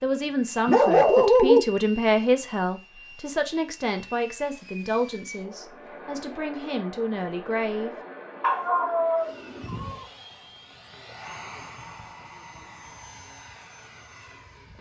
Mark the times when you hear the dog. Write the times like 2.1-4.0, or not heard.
0.7-1.6, 8.4-10.1.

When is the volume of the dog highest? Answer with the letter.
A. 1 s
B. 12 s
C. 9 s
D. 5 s
A.